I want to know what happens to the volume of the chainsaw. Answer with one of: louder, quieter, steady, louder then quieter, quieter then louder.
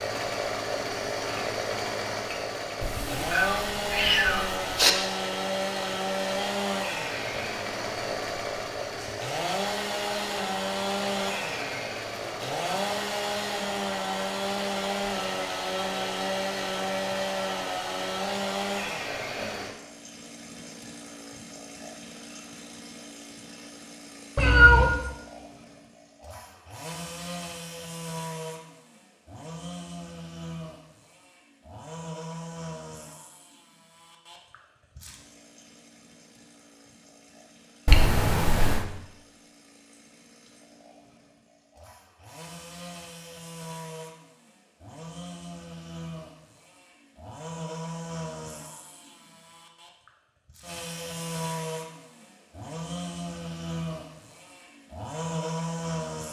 quieter then louder.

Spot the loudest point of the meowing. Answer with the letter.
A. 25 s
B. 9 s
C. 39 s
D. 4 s
A.